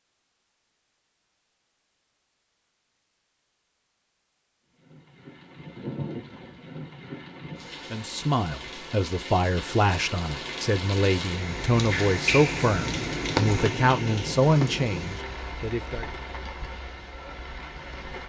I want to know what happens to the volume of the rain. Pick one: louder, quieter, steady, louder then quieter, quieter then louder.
louder then quieter.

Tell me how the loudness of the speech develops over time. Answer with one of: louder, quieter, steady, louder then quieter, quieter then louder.
steady.